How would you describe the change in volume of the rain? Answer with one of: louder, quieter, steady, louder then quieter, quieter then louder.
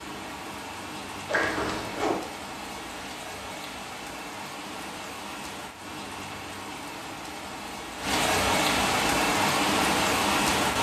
louder.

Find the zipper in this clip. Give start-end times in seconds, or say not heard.
1.2-2.2.